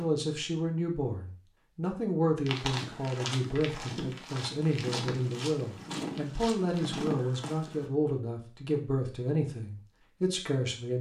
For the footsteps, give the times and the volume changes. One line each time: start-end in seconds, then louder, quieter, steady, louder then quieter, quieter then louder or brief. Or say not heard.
2.5-7.9 steady.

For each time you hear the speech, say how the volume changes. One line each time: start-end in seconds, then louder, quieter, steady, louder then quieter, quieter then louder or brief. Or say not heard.
0.0-10.9 steady.